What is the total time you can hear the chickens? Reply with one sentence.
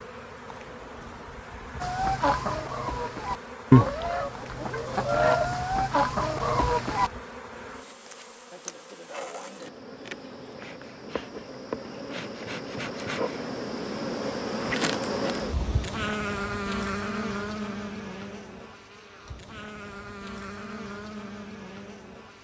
You can hear the chickens for 5 seconds altogether.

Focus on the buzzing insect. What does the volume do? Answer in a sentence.
The volume of the buzzing insect goes up, then down.